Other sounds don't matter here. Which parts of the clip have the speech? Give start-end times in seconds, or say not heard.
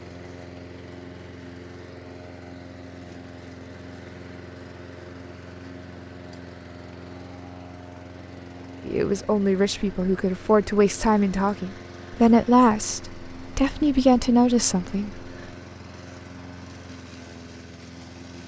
8.8-15.2.